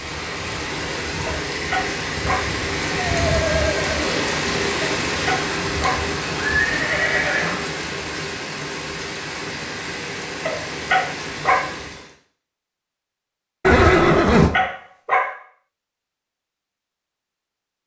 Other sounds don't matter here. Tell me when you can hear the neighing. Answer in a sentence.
You can hear the neighing from 3.0 to 4.4 s, from 6.3 to 7.7 s and from 13.7 to 14.5 s.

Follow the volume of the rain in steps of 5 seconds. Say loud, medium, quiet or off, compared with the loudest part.
loud, loud, medium, off.